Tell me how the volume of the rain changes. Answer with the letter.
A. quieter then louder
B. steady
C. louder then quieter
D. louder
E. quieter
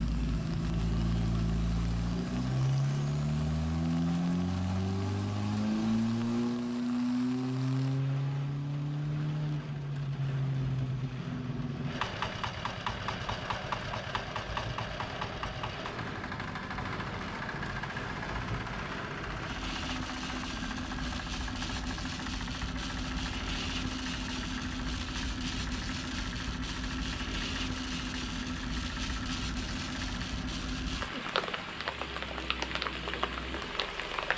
D.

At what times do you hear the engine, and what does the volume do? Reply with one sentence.
The engine can be heard from 0.0 to 34.3 s, getting quieter.